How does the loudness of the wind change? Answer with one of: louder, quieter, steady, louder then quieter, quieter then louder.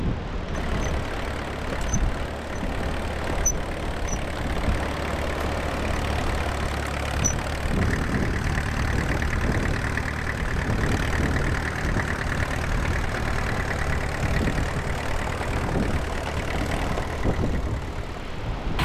steady.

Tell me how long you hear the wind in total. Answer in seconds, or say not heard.
19 s.